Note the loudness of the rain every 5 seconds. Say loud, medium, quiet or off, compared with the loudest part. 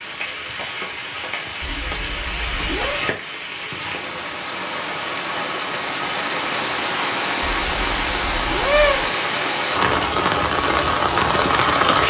medium, loud, loud.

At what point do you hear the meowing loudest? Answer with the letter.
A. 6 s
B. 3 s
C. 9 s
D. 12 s
C.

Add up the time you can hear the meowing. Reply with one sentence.
The meowing can be heard for 3 seconds in total.